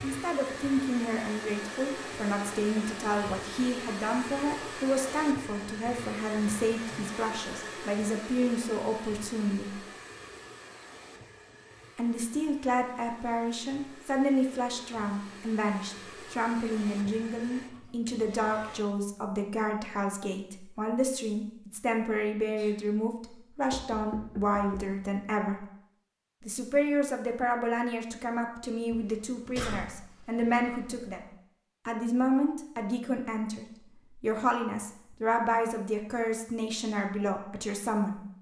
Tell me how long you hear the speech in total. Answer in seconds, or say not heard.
35 s.